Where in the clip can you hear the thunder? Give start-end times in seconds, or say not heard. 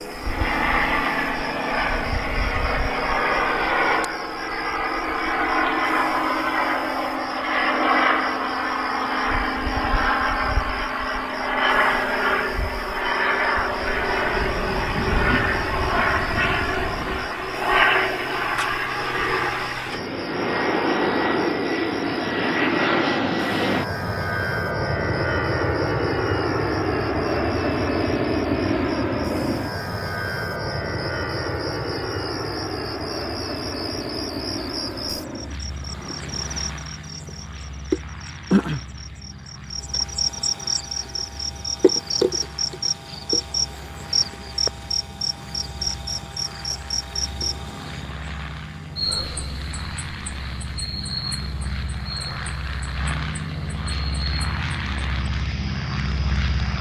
13.8-17.3.